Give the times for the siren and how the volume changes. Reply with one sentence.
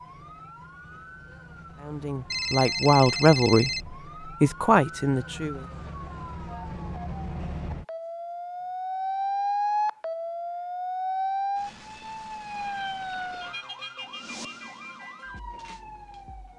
The siren can be heard from 0.0 to 16.5 s, getting louder then quieter.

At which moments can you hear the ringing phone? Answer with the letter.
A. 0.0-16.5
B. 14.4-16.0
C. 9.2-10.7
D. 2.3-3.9
D.